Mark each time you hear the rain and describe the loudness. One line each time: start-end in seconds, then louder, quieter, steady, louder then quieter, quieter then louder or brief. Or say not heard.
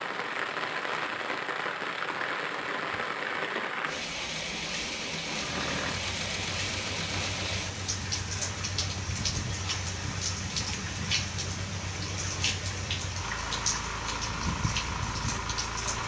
0.0-16.0 steady.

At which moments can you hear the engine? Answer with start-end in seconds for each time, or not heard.
5.3-16.0.